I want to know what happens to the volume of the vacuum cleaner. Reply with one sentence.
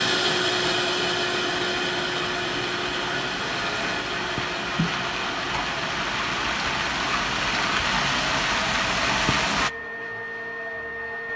The loudness of the vacuum cleaner goes down.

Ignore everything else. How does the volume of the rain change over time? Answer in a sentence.
The volume of the rain goes up.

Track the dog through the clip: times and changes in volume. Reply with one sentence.
You can't hear the dog here.